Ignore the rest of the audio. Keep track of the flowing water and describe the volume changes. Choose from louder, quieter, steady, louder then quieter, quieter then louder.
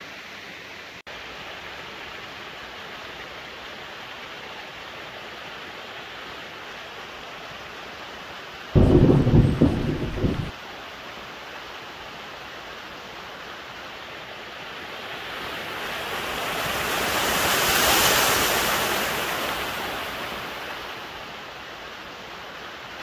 louder.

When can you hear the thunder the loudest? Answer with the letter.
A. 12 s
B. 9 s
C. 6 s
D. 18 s
B.